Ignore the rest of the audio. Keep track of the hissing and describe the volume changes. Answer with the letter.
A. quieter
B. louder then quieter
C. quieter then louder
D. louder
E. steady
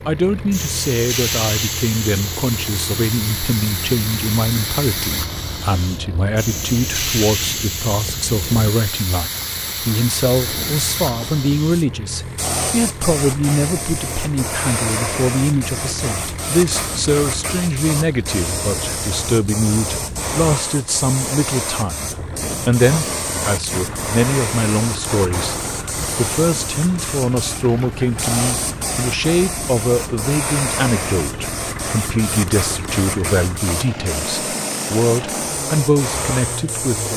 E.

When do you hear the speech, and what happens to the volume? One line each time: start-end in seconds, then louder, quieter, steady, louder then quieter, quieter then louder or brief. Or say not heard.
0.1-37.1 steady.